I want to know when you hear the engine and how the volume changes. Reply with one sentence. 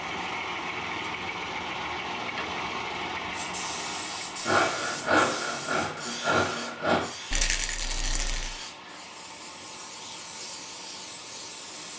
You can hear the engine from 0.0 to 11.9 s, getting quieter.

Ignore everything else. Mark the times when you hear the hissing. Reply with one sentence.
The hissing can be heard from 3.3 to 11.9 s.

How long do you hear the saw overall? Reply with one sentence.
You can hear the saw for 3 seconds altogether.